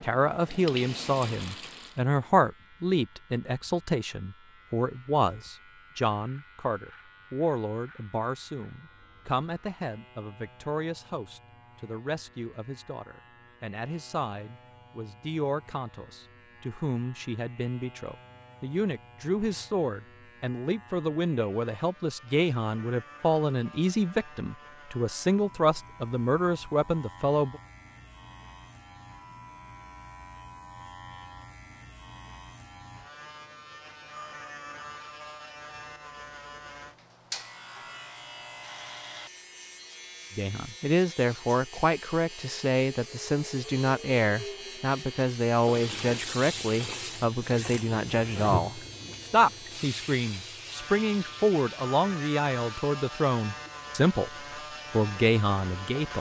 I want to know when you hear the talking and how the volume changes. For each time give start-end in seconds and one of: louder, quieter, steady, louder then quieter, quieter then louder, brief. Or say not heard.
0.0-27.6 quieter then louder
40.4-54.3 steady
54.9-56.1 brief.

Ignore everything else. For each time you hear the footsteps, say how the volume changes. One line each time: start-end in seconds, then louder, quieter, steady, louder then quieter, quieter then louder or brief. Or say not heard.
not heard.